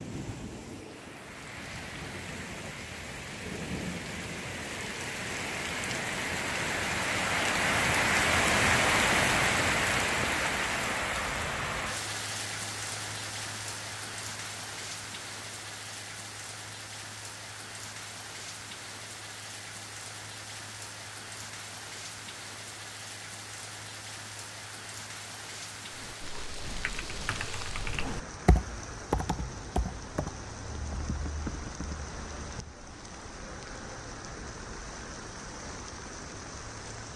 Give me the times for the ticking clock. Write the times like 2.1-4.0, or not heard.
not heard.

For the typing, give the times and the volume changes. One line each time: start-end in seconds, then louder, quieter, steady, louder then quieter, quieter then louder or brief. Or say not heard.
25.9-32.8 louder then quieter.